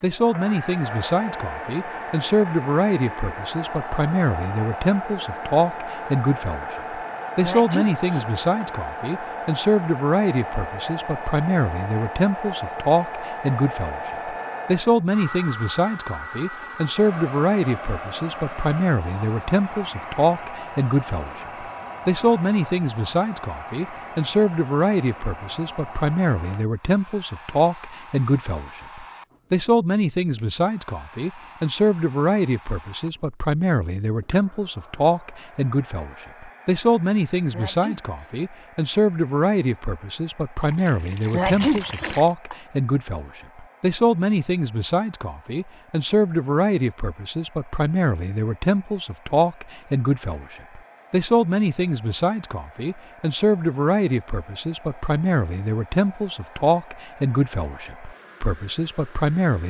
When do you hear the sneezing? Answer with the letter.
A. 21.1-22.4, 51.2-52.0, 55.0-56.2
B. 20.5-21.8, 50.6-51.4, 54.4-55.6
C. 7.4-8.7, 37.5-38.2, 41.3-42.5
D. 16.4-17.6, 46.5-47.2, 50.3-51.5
C.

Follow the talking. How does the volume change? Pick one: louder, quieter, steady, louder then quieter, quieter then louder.
steady.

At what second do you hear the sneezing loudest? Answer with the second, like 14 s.
42 s.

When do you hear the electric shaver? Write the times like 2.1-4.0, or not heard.
not heard.